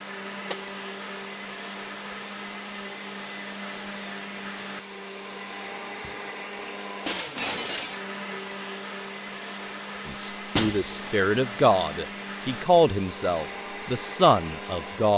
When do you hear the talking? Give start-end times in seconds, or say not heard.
10.1-15.1.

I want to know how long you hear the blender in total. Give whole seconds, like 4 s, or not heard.
15 s.